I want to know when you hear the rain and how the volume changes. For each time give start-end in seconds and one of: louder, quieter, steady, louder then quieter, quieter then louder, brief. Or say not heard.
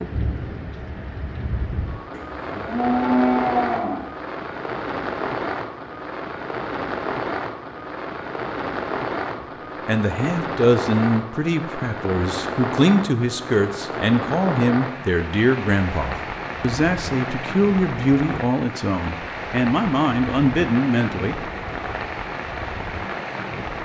0.0-23.8 steady.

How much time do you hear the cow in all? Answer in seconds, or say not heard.
2 s.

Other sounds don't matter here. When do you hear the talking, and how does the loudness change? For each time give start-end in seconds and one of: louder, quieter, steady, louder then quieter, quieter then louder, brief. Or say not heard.
9.8-21.8 steady.